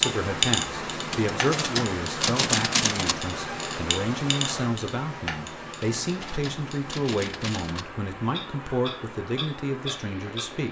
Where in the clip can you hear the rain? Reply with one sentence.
The rain can be heard from 0.0 to 10.6 s.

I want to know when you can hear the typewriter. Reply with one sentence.
You can hear the typewriter from 1.1 to 3.1 s and from 5.8 to 7.8 s.